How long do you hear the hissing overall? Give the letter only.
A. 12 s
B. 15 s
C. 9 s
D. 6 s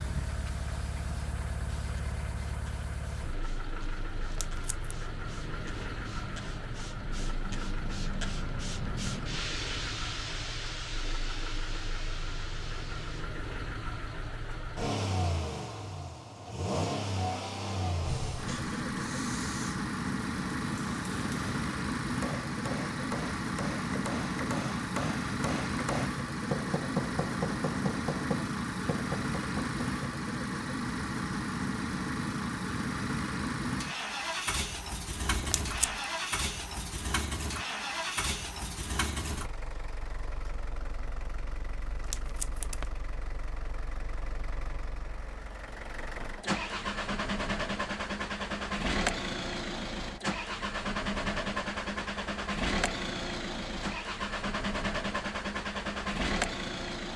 B.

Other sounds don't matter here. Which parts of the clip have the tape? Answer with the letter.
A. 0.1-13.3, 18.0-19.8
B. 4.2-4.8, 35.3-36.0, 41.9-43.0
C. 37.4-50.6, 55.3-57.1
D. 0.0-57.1
B.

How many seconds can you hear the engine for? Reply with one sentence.
You can hear the engine for 57 seconds altogether.